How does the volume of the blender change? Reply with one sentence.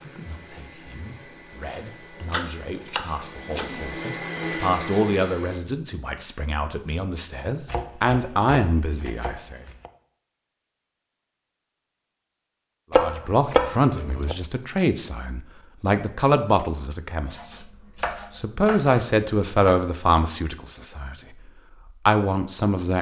The volume of the blender goes up.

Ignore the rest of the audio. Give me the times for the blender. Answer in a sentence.
You can hear the blender from 0.0 to 5.6 s.